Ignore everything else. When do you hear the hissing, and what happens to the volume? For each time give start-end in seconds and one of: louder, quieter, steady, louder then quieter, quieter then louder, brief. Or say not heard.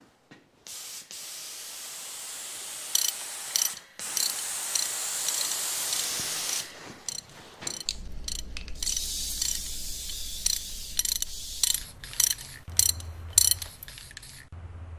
0.0-14.9 louder then quieter.